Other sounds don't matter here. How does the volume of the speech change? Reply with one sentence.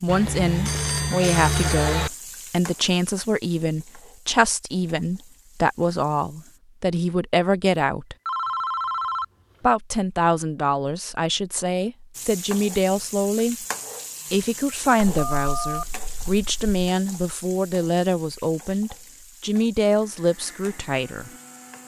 The volume of the speech stays about the same.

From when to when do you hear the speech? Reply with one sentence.
You can hear the speech from 0.0 to 8.2 s, from 9.6 to 13.7 s and from 14.3 to 21.3 s.